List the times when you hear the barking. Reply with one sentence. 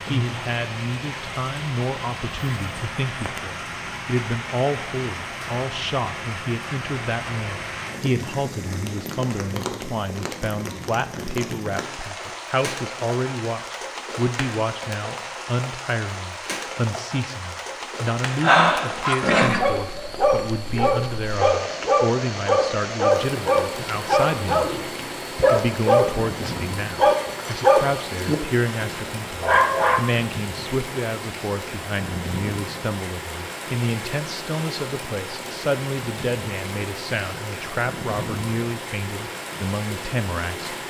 You can hear the barking from 18.2 to 30.1 s.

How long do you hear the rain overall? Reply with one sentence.
The rain can be heard for 41 seconds in total.